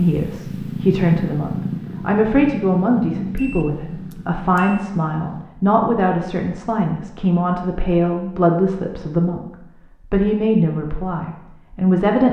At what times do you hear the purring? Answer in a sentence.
You can hear the purring from 0.0 to 5.5 s.